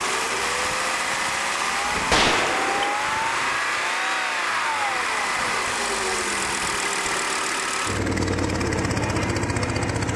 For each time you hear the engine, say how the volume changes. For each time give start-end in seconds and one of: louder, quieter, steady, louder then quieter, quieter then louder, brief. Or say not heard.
0.0-10.1 steady.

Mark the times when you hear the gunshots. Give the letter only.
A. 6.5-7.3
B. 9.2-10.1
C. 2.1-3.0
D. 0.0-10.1
C.